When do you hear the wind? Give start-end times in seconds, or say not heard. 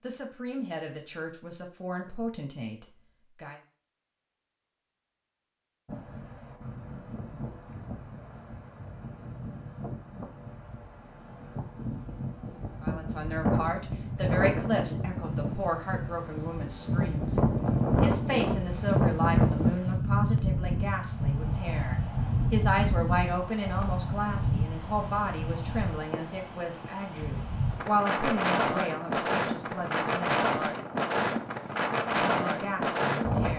5.8-33.5.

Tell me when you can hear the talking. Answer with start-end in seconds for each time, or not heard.
0.0-3.5, 12.8-17.4, 18.0-30.6, 32.2-33.5.